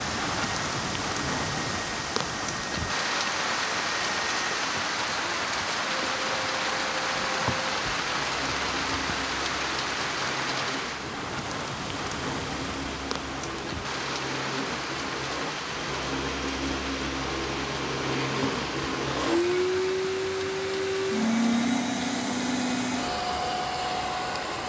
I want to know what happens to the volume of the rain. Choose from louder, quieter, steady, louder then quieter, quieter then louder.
quieter.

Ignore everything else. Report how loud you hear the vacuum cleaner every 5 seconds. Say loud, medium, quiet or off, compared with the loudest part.
medium, medium, medium, loud, loud.